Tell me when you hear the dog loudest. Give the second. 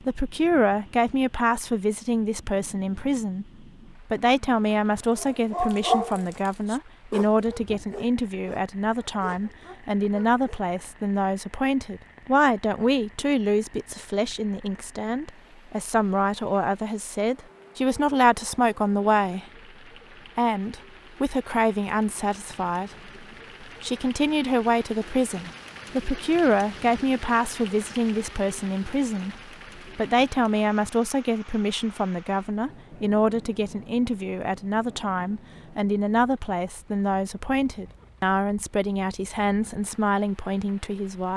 6 s.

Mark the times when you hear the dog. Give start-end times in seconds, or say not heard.
5.0-10.6.